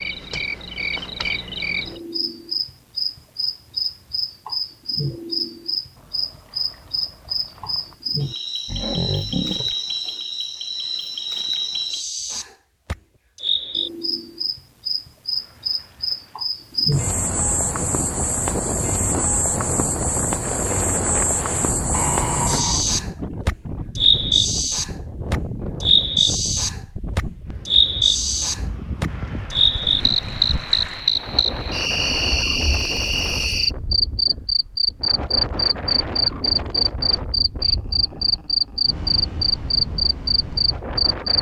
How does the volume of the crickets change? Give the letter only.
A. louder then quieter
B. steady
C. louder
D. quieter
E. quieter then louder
C.